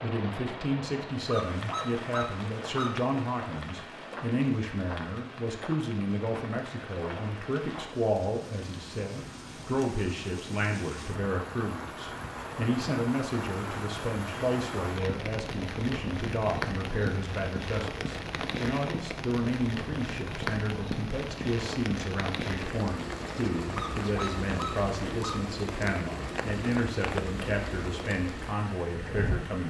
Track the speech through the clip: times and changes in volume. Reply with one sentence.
You can hear the speech from 0.0 to 29.6 s, at a steady volume.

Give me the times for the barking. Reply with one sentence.
The barking can be heard from 1.2 to 3.0 s and from 23.7 to 25.4 s.